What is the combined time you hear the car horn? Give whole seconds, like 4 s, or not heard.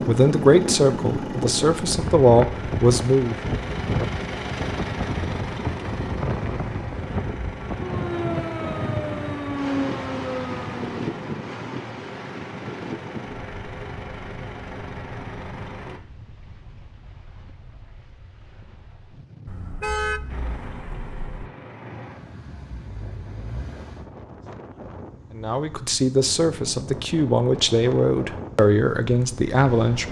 2 s.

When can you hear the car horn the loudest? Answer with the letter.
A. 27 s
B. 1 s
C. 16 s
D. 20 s
D.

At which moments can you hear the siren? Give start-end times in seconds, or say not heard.
7.7-11.0.